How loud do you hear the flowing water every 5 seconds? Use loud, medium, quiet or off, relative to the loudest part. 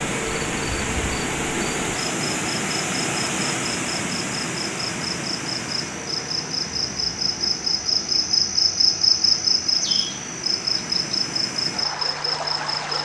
loud, medium, medium.